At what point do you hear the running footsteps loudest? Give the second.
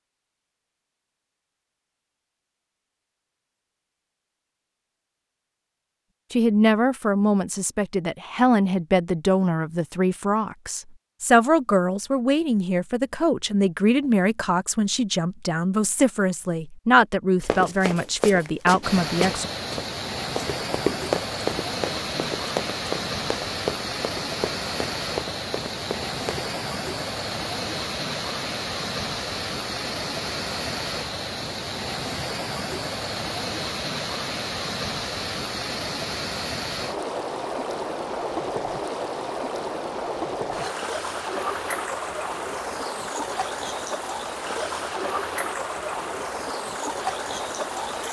21 s.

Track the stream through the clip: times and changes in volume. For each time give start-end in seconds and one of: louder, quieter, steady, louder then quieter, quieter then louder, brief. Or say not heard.
18.8-48.0 steady.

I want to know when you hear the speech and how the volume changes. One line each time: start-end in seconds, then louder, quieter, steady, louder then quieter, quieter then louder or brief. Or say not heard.
6.3-19.5 steady.